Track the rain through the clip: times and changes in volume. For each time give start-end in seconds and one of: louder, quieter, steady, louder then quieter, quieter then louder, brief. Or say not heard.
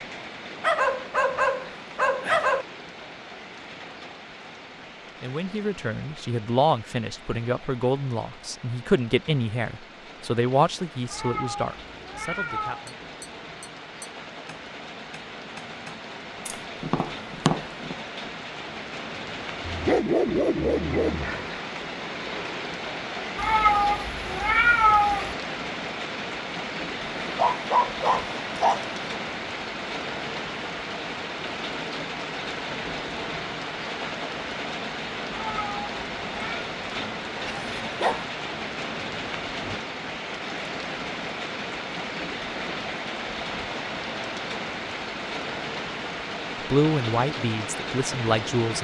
0.0-48.7 louder.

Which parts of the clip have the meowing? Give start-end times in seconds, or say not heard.
11.1-12.8, 23.4-25.4, 35.3-36.6.